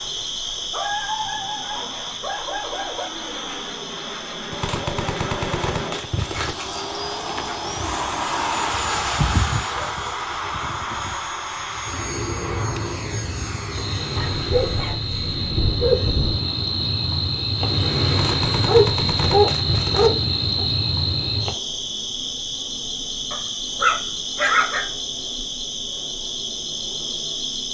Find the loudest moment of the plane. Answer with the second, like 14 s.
9 s.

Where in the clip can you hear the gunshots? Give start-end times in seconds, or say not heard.
4.5-6.5, 18.1-20.1.